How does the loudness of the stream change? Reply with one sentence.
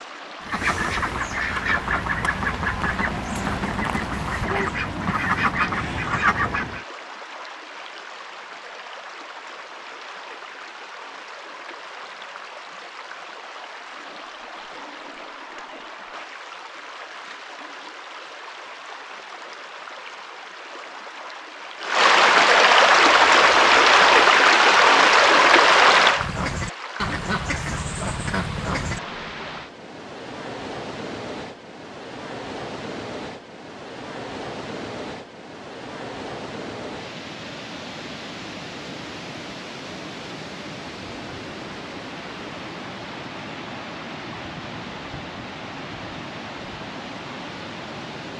The volume of the stream goes up, then down.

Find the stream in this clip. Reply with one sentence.
The stream can be heard from 0.0 to 48.3 s.